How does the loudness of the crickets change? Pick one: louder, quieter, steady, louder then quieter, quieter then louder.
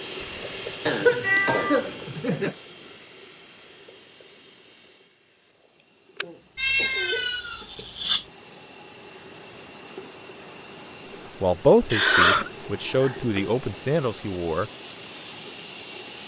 quieter then louder.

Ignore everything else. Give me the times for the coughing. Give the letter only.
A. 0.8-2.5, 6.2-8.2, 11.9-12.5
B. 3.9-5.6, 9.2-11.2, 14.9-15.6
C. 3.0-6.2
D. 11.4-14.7
A.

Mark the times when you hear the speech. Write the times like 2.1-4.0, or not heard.
11.4-14.7.